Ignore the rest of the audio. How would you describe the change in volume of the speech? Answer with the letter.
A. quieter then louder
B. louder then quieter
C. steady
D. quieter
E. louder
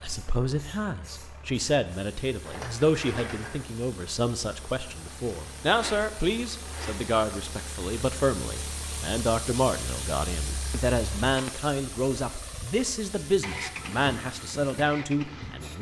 C.